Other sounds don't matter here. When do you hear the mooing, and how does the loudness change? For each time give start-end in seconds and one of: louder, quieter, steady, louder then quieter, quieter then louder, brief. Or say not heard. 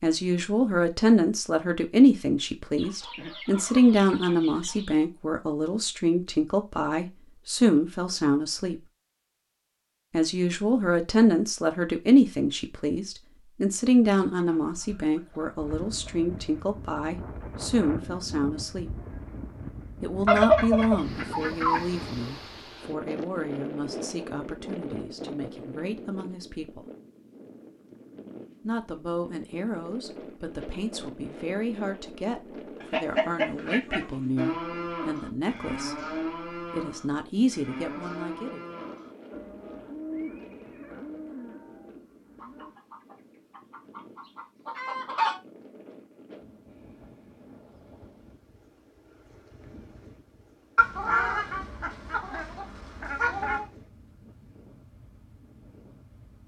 34.4-42.8 quieter.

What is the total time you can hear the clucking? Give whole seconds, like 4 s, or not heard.
13 s.